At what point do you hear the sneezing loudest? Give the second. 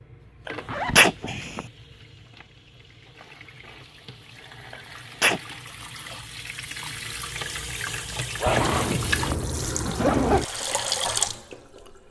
1 s.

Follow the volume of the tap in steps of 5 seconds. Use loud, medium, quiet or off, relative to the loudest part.
quiet, loud, loud.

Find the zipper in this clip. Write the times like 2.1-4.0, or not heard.
0.7-1.6, 8.4-10.4.